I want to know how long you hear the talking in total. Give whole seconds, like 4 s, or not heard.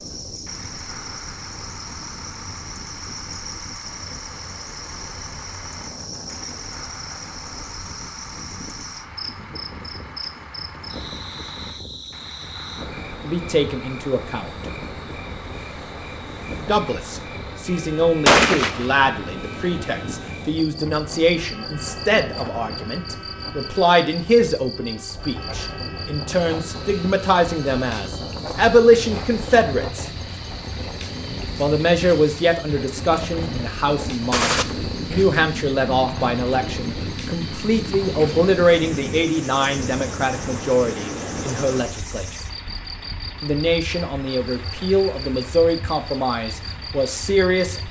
30 s.